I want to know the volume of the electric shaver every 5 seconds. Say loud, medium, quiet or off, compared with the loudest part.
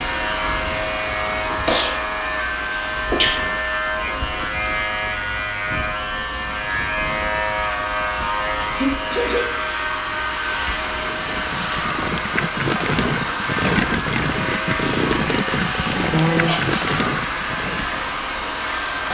loud, loud, medium, loud.